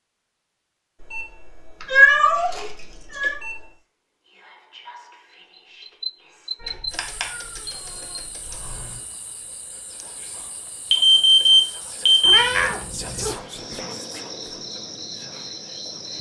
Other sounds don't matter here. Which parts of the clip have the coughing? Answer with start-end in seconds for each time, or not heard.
not heard.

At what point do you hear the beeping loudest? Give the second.
11 s.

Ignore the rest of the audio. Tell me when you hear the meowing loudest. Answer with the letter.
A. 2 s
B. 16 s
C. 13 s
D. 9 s
A.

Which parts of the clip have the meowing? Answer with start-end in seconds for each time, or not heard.
1.8-3.4, 6.6-8.8, 12.2-13.3.